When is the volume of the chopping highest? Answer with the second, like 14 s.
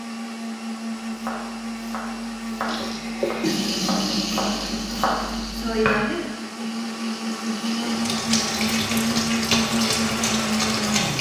6 s.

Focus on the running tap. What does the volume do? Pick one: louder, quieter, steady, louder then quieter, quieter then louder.
quieter then louder.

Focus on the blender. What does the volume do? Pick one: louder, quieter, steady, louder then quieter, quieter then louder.
louder.